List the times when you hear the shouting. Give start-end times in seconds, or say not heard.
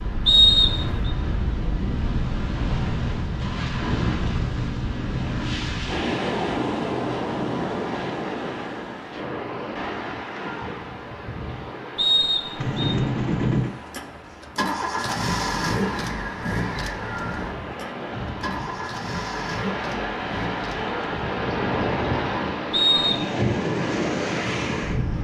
not heard.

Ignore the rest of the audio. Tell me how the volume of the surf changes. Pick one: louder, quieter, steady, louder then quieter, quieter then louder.
quieter then louder.